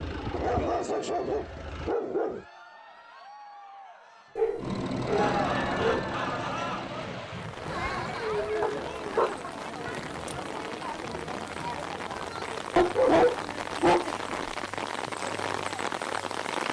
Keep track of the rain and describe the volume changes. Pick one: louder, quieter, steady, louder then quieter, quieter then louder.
louder.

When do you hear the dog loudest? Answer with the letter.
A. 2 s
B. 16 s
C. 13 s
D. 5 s
C.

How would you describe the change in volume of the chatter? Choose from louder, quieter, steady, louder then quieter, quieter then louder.
louder then quieter.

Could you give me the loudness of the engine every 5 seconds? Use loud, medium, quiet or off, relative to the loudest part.
loud, loud, off, off.